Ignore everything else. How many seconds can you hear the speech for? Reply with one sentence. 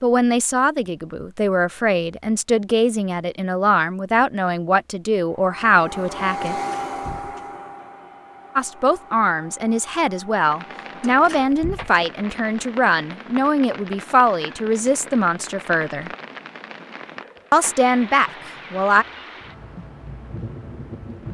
You can hear the speech for 16 seconds altogether.